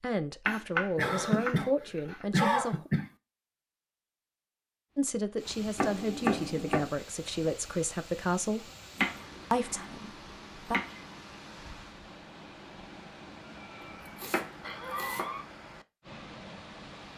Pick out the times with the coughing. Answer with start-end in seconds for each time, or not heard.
0.9-3.1, 13.4-15.4.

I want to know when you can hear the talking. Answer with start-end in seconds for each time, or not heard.
0.0-2.9, 5.0-8.7, 9.5-10.8.